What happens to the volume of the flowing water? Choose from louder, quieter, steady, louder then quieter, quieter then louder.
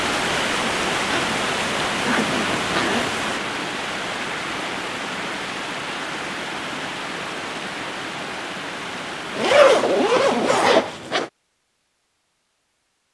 quieter.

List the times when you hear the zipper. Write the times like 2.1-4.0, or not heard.
1.1-3.1, 9.3-11.3.